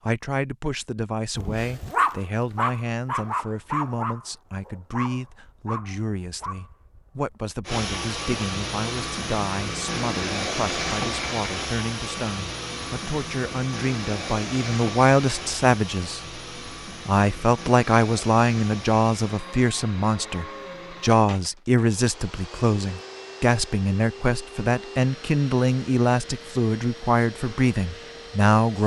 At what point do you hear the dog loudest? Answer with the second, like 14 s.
2 s.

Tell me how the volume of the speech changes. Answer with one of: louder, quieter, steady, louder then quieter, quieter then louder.
louder.